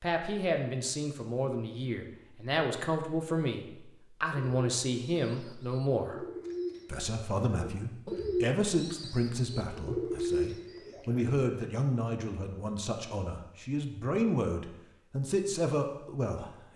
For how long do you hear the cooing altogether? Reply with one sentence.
You can hear the cooing for 7 seconds altogether.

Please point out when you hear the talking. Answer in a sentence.
The talking can be heard from 0.0 to 6.2 s and from 6.8 to 16.7 s.